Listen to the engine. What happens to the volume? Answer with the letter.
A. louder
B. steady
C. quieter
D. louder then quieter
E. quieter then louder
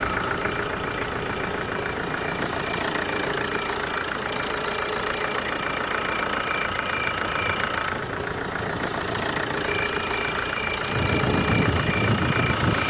B.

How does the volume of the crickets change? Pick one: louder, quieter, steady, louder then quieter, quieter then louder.
louder.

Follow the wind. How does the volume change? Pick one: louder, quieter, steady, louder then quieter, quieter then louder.
louder.